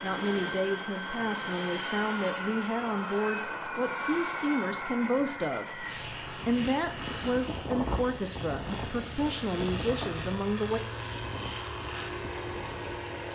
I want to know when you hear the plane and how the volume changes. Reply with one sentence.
You can hear the plane from 0.0 to 13.3 s, at a steady volume.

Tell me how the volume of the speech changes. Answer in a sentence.
The loudness of the speech stays about the same.